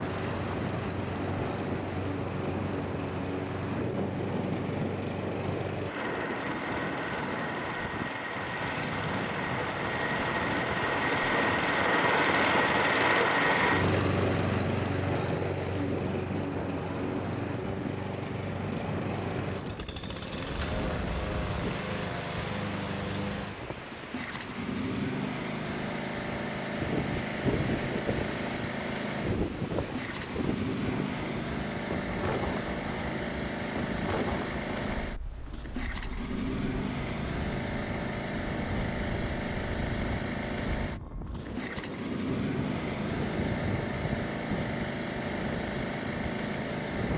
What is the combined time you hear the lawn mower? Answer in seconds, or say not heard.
47 s.